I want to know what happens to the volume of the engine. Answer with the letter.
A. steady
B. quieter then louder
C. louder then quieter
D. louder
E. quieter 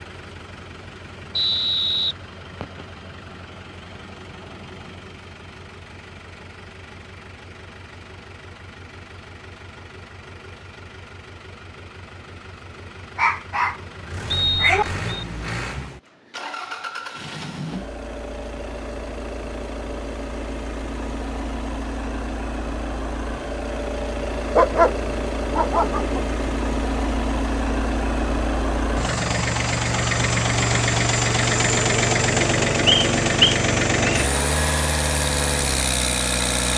D.